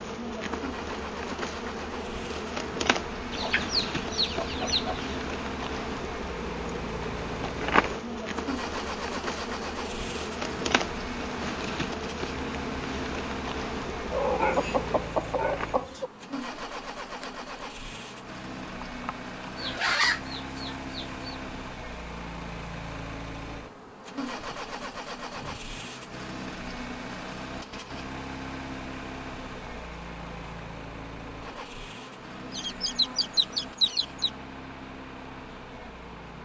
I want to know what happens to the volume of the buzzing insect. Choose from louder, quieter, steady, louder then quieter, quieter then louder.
quieter.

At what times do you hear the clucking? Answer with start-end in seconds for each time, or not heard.
3.3-5.2, 14.1-16.1, 19.6-21.2, 32.5-34.3.